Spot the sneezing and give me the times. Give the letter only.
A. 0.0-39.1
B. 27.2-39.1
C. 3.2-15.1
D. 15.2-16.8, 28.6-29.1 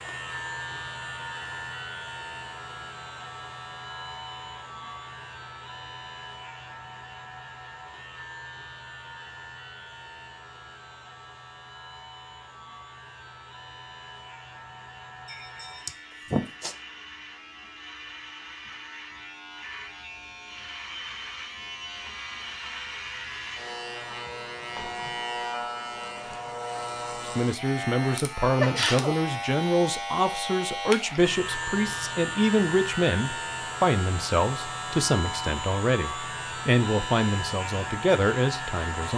D.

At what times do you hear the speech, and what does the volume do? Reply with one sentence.
You can hear the speech from 27.2 to 39.1 s, at a steady volume.